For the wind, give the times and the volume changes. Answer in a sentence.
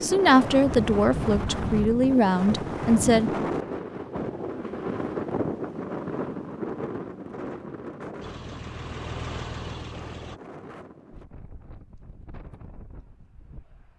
The wind can be heard from 0.0 to 13.9 s, getting quieter.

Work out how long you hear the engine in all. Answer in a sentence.
The engine can be heard for 2 seconds in total.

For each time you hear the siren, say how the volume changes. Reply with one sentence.
You can't hear the siren here.